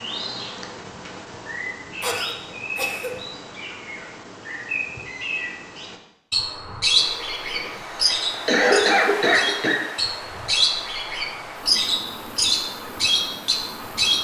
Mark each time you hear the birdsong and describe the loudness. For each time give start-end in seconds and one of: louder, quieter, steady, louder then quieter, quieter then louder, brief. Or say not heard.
0.0-14.1 louder.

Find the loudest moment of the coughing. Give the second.
9 s.